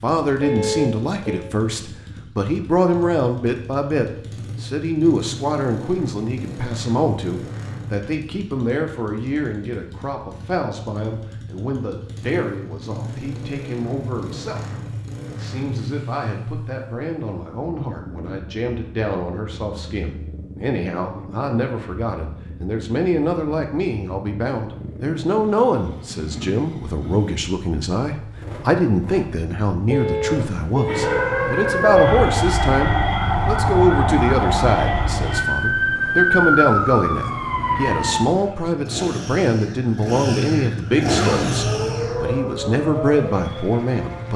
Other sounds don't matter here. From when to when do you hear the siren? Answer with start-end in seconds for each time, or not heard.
30.9-38.2, 41.2-44.3.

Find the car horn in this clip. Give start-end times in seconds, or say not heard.
0.4-1.5, 29.9-31.1.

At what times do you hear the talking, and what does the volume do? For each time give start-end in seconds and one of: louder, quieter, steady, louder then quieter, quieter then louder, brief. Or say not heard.
0.0-44.3 quieter then louder.